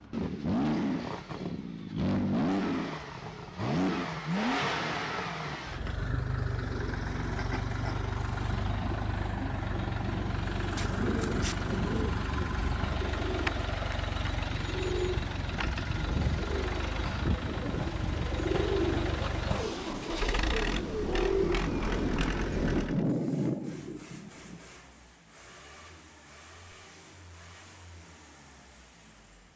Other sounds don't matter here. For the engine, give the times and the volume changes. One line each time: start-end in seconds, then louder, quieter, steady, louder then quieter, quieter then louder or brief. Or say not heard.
0.0-29.5 quieter.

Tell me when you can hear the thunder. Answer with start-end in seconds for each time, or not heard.
8.8-12.8, 20.6-24.6.